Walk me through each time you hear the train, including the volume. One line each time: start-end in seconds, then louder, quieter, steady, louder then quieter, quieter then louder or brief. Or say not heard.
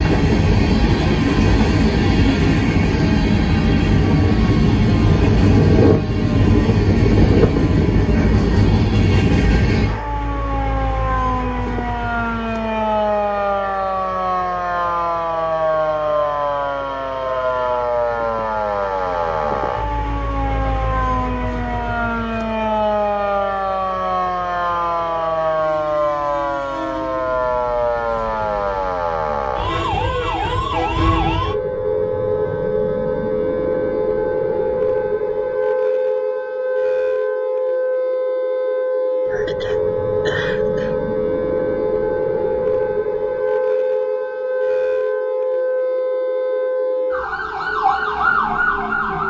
0.0-28.9 quieter.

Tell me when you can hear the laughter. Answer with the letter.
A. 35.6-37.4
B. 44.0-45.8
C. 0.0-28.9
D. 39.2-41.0
D.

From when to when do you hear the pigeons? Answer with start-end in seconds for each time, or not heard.
not heard.